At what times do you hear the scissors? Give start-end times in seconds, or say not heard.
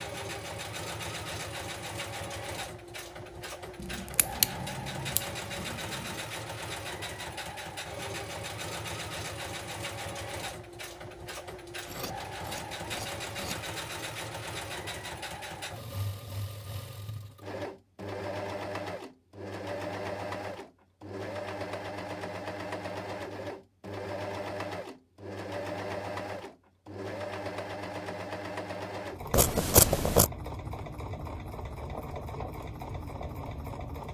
3.8-6.2, 11.8-13.7, 29.3-30.3.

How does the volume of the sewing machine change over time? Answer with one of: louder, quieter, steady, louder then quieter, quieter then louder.
steady.